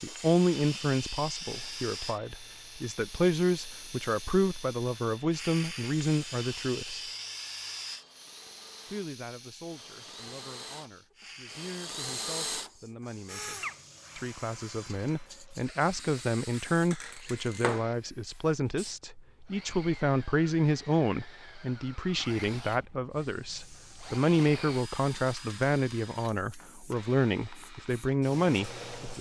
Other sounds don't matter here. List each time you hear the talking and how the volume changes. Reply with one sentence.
You can hear the talking from 0.0 to 7.0 s, getting quieter then louder; and from 8.8 to 29.1 s, getting louder.